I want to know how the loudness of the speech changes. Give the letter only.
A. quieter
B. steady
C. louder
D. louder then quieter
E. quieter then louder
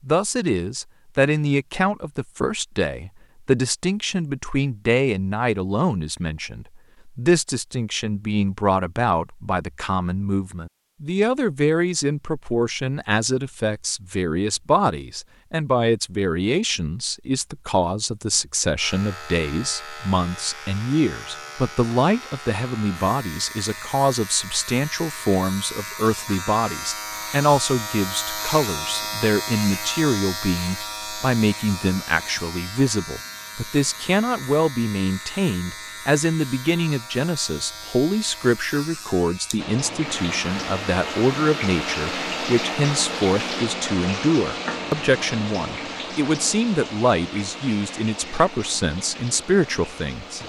B.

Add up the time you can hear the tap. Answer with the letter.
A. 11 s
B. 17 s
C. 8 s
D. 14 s
A.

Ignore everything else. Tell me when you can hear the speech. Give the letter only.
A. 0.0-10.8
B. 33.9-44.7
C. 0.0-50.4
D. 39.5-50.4
C.